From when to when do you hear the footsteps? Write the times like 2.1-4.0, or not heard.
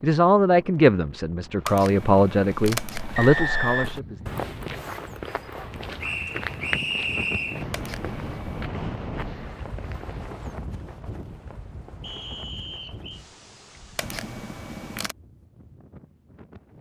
2.5-10.6.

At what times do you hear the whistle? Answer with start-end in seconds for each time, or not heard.
3.1-3.9, 6.0-7.7, 12.0-13.2.